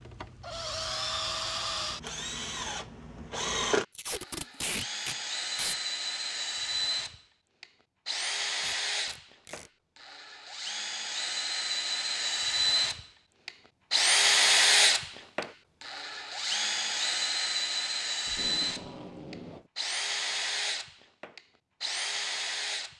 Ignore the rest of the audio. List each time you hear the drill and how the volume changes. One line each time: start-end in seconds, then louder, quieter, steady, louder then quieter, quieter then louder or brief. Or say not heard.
0.0-22.9 louder then quieter.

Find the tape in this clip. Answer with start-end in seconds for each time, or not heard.
4.0-5.8, 8.6-9.7, 18.2-19.7.